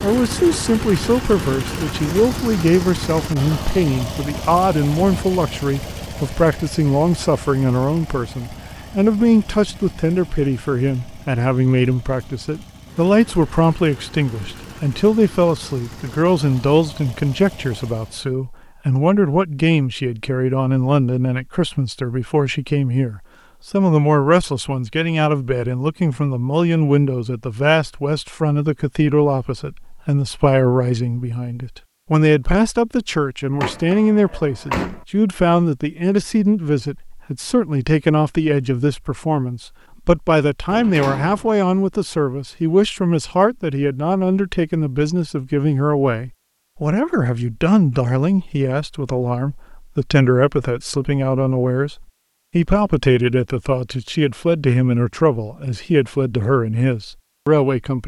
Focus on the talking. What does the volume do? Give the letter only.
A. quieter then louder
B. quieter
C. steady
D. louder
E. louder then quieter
C.